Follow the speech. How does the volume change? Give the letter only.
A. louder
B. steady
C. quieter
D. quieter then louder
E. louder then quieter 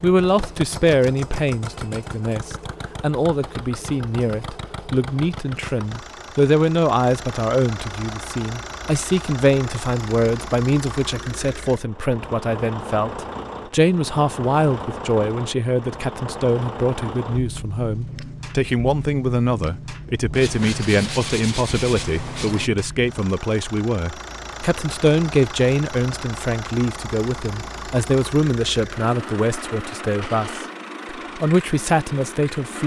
B.